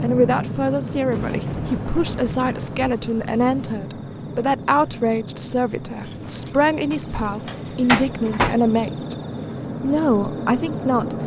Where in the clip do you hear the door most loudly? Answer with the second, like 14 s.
8 s.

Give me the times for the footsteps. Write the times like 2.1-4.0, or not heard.
not heard.